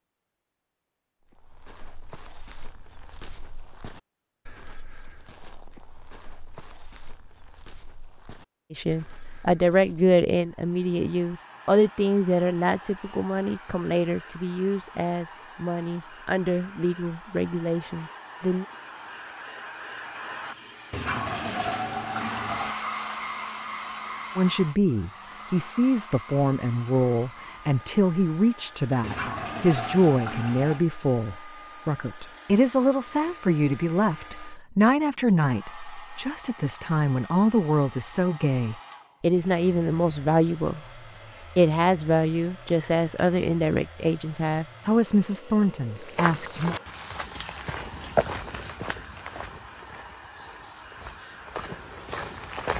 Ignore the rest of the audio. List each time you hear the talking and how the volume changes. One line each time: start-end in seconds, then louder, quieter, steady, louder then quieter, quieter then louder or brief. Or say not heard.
8.7-18.6 quieter
24.4-40.9 steady
41.5-46.8 steady.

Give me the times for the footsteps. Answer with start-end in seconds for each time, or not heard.
1.2-10.2, 45.9-52.7.